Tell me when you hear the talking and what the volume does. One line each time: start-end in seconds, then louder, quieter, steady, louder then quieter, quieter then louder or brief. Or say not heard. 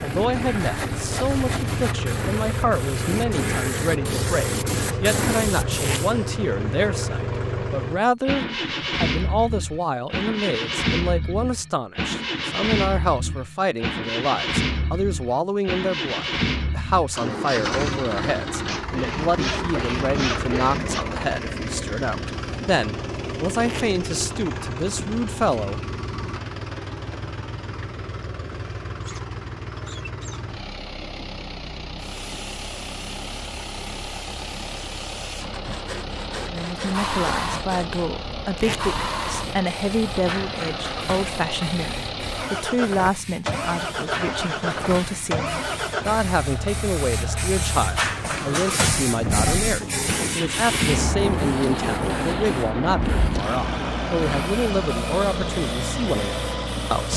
0.0-25.8 steady
36.5-57.1 steady.